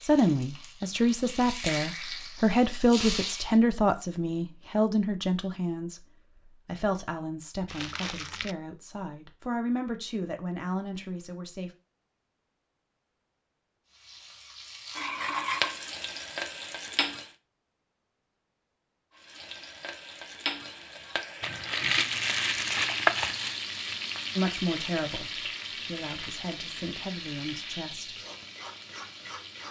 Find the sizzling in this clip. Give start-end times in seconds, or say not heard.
0.0-3.6, 13.9-17.3, 19.1-29.6.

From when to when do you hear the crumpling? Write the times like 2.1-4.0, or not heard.
7.7-8.6, 21.4-23.6.